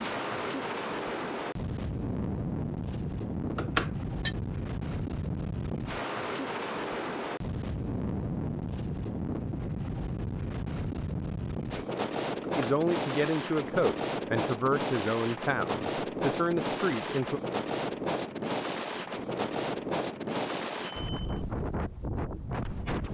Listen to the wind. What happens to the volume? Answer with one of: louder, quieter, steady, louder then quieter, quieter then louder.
steady.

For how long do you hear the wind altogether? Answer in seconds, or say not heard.
23 s.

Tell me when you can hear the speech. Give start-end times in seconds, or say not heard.
12.6-17.4.